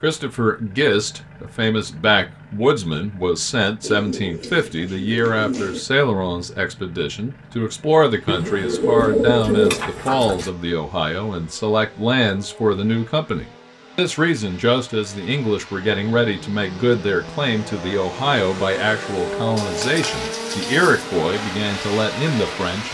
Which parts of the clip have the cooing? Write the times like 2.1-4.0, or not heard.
3.8-5.8, 8.2-10.5, 19.6-21.1.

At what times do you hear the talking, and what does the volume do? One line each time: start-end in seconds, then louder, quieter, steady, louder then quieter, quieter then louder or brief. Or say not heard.
0.0-22.8 steady.